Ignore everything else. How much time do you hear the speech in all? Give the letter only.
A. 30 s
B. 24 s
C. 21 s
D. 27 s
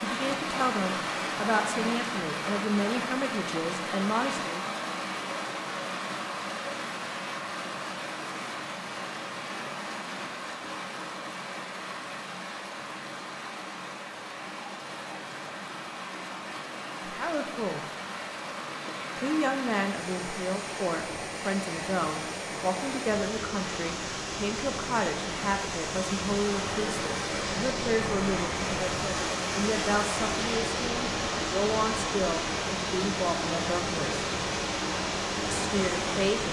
C.